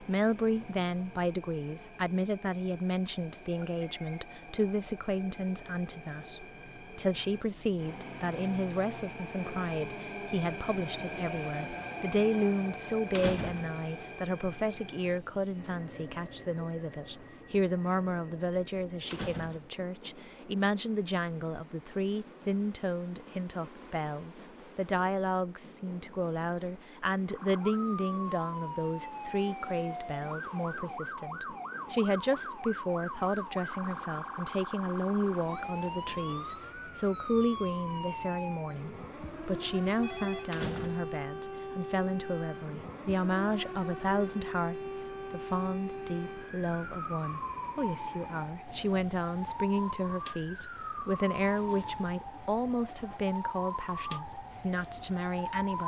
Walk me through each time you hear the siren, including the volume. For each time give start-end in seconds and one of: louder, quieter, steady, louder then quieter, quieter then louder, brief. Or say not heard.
27.2-55.8 steady.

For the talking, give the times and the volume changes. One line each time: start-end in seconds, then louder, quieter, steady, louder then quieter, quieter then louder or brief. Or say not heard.
0.0-55.8 steady.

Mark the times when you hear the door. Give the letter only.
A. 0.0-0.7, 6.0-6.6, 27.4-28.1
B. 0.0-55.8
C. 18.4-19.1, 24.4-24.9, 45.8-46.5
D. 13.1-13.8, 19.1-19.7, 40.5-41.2
D.